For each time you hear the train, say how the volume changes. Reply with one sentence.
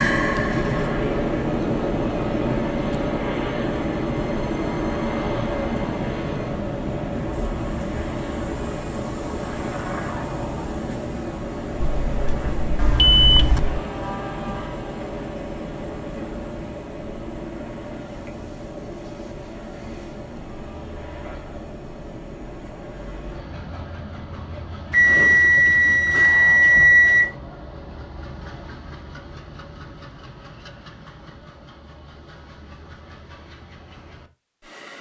The train can be heard from 0.0 to 34.9 s, getting quieter.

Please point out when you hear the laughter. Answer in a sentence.
You can't hear the laughter here.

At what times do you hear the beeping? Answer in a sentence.
The beeping can be heard from 11.8 to 13.8 s and from 24.9 to 27.3 s.